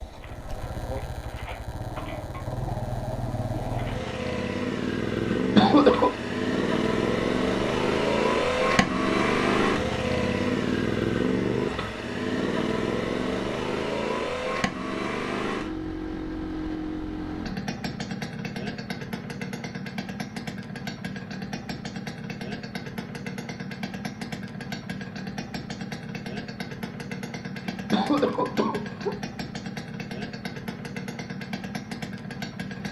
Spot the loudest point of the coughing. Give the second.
6 s.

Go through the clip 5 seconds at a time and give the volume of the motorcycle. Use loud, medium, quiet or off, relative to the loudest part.
medium, loud, loud, medium, medium, medium, medium.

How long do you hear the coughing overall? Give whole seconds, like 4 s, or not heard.
2 s.